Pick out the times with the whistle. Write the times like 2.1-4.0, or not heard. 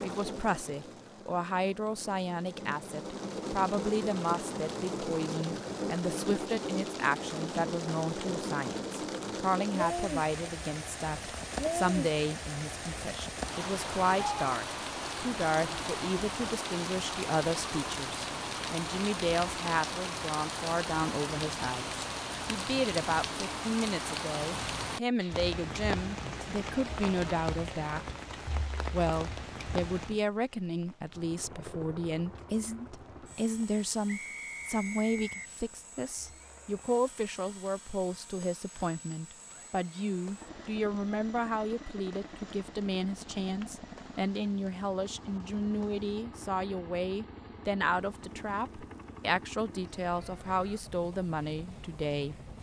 34.0-35.5.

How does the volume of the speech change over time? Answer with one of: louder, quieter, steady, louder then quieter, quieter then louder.
steady.